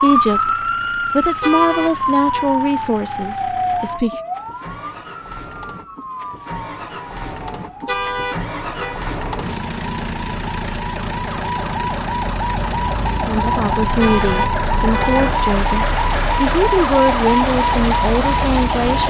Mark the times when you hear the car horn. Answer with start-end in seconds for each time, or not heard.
1.4-2.5, 7.8-9.0, 14.0-15.3.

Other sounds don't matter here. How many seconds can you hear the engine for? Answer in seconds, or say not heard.
19 s.